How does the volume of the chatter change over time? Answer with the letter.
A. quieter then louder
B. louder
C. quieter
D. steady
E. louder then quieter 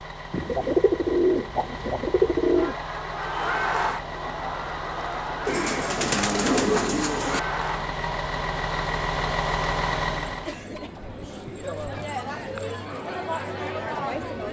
A.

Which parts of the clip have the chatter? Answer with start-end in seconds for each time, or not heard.
2.5-14.4.